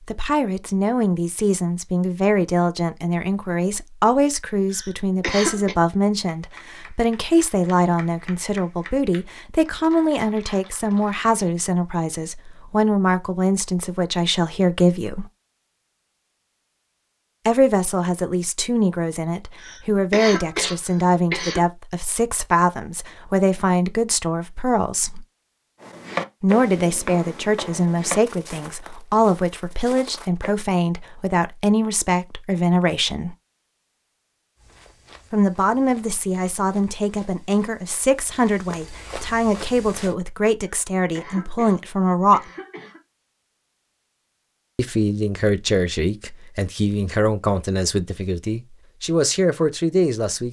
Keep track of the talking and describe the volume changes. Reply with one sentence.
The volume of the talking stays about the same.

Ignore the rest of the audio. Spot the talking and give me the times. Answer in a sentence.
The talking can be heard from 0.1 to 15.2 s, from 17.4 to 25.2 s, from 26.4 to 33.4 s, from 35.3 to 42.4 s and from 44.8 to 50.4 s.